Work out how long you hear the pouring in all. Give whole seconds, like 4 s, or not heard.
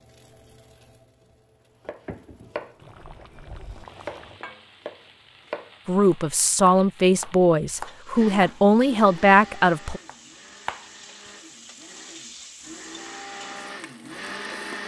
2 s.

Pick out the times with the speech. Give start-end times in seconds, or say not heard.
5.8-10.0.